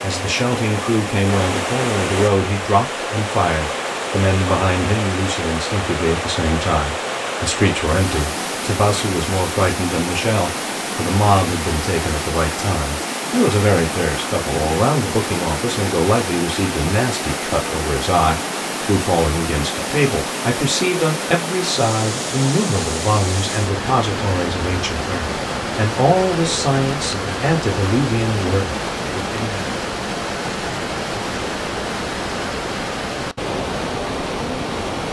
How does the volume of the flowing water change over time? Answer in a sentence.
The volume of the flowing water stays about the same.